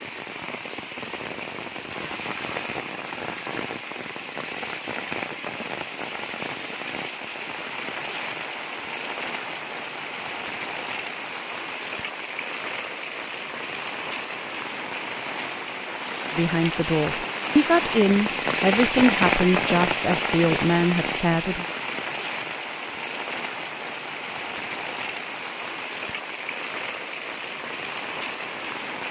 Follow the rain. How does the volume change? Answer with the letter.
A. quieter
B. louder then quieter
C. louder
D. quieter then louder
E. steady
B.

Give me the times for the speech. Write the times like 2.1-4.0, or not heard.
16.3-21.6.